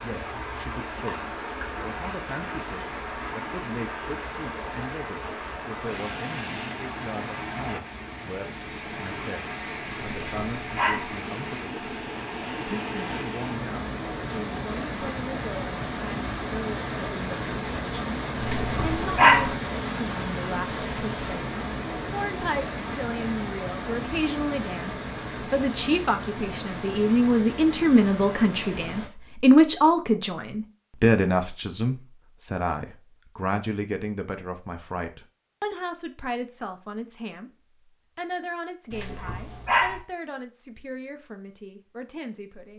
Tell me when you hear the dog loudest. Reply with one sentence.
The volume of the dog peaks at 19 seconds.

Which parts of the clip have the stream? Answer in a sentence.
You can hear the stream from 0.0 to 29.1 s.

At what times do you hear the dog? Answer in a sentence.
The dog can be heard from 10.0 to 11.1 s, from 18.4 to 19.5 s and from 38.9 to 40.0 s.